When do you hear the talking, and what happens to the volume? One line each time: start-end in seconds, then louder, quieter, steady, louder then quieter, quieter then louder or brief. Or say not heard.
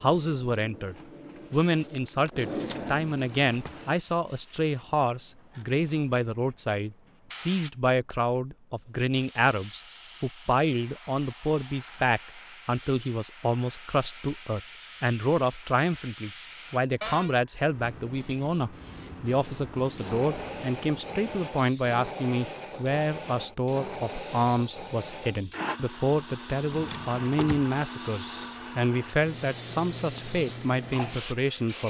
0.0-31.8 steady.